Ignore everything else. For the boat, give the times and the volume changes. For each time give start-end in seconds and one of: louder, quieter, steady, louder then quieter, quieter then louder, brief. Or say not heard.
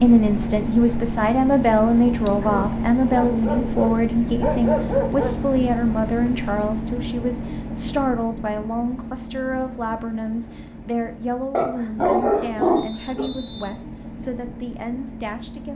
0.0-15.7 quieter.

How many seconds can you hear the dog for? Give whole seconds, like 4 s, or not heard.
5 s.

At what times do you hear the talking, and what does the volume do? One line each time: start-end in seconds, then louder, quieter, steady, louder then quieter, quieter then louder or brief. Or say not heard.
0.0-15.7 quieter.